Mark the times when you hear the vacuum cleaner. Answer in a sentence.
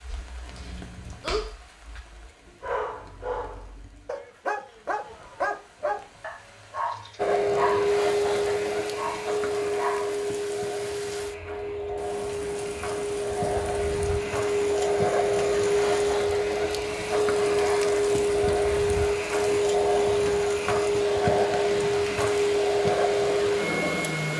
You can hear the vacuum cleaner from 7.2 to 24.3 s.